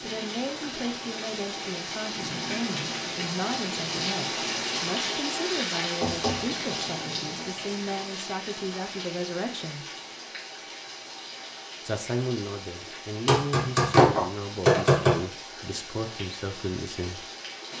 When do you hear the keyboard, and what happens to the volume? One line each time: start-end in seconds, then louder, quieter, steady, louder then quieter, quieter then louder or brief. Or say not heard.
not heard.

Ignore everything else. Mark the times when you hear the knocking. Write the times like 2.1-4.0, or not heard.
6.0-6.8, 13.2-15.2.